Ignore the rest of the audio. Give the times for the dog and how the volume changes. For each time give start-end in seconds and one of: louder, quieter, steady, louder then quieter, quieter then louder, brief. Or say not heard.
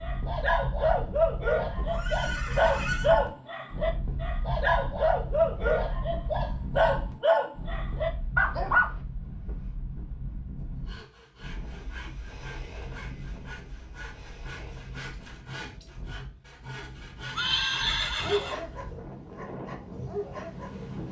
0.0-8.9 steady
18.2-21.0 brief.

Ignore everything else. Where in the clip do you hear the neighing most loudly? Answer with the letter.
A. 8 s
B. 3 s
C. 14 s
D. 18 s
D.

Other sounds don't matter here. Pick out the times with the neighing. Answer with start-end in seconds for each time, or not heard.
1.9-3.1, 17.4-18.6.